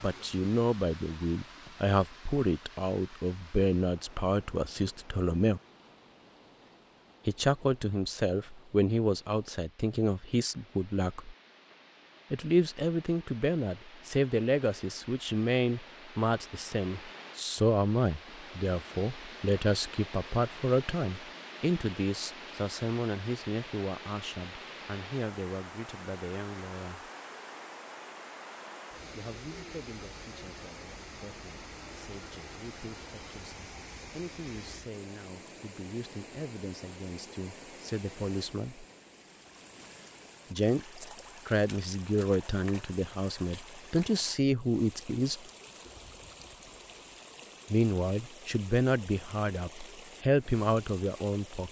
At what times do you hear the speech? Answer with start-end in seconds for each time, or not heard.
0.0-5.6, 7.2-11.3, 12.3-27.1, 29.1-38.9, 40.5-45.4, 47.7-51.6.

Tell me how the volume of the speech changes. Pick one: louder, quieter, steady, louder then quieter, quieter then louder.
quieter then louder.